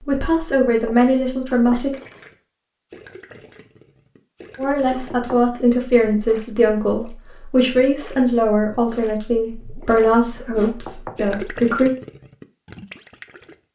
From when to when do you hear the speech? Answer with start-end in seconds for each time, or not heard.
0.1-1.9, 4.5-11.9.